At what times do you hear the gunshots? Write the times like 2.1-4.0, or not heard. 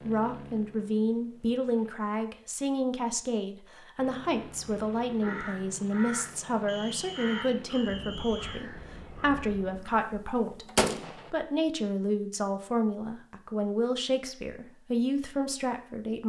9.8-11.3.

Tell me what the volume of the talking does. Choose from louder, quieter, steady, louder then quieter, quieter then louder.
steady.